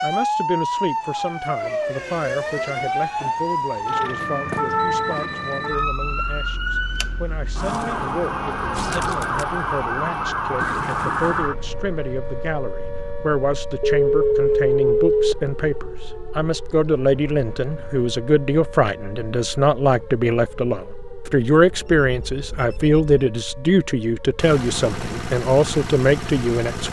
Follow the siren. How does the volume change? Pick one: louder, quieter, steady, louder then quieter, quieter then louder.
quieter.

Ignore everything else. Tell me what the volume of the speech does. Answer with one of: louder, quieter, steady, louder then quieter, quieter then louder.
louder.